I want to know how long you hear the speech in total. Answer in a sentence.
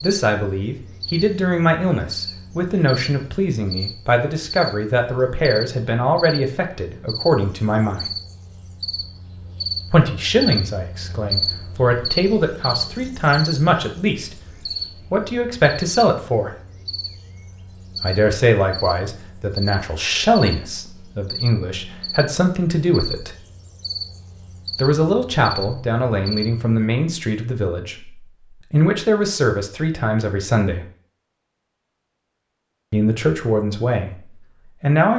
The speech can be heard for 28 seconds in total.